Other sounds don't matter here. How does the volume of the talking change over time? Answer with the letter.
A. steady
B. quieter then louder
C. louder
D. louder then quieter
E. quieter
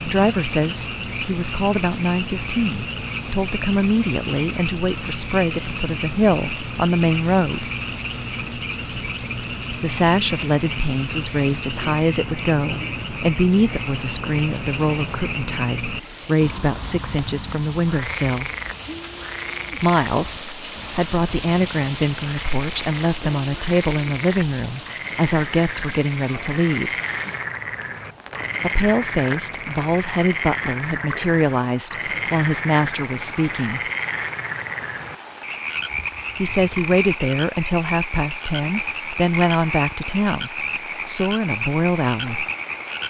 A.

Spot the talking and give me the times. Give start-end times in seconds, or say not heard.
0.0-7.7, 9.8-18.5, 19.8-26.9, 28.6-33.8, 36.4-42.5.